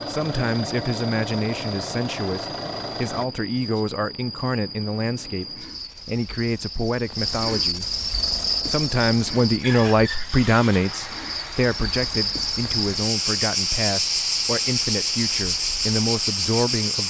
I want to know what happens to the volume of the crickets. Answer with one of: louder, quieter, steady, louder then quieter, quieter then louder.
louder.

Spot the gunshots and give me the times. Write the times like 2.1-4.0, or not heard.
not heard.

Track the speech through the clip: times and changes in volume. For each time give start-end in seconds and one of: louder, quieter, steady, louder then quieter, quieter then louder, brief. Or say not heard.
0.1-8.1 steady
8.7-17.0 quieter.